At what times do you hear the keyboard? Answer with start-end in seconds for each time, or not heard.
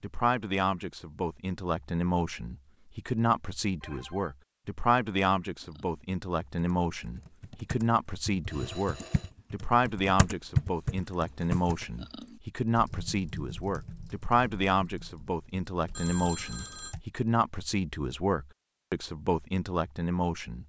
5.6-17.1.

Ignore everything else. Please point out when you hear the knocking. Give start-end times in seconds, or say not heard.
not heard.